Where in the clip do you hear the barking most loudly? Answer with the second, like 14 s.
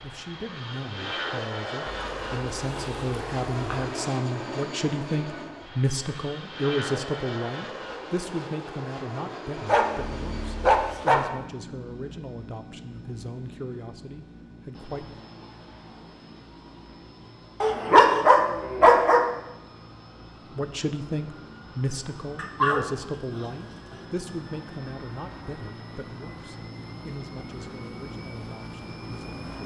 18 s.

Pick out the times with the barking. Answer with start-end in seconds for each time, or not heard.
1.9-3.9, 9.7-11.2, 17.6-19.3, 22.4-23.9.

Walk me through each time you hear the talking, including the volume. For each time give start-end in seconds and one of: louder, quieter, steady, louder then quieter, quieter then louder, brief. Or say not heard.
0.0-15.2 louder then quieter
20.6-29.6 quieter.